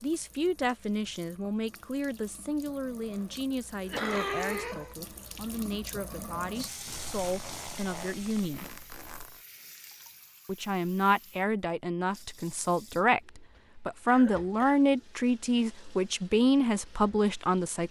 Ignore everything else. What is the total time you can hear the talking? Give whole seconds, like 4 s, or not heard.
16 s.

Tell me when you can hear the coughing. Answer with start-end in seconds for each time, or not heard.
3.8-5.0, 14.1-14.8.